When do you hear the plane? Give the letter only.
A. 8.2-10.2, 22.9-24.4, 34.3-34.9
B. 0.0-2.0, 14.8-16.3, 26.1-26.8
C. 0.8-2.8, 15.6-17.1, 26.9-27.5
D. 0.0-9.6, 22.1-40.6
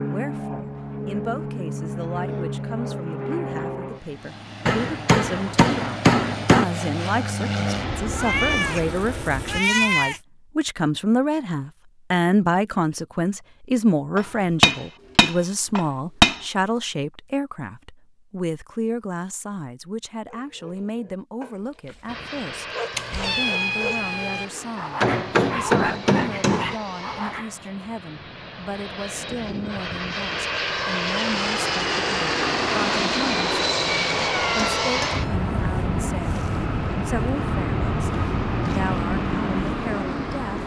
D.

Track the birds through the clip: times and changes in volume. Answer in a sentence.
The birds can't be heard in this clip.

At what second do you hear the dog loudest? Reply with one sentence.
The volume of the dog peaks at 26 seconds.